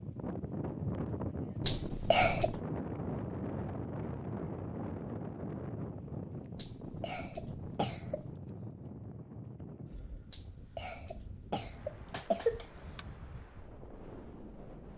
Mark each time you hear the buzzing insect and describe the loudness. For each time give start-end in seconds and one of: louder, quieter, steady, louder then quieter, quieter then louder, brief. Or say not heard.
not heard.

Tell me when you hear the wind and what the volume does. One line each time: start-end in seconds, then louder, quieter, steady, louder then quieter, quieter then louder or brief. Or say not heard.
0.0-14.9 quieter.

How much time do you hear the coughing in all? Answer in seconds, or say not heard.
5 s.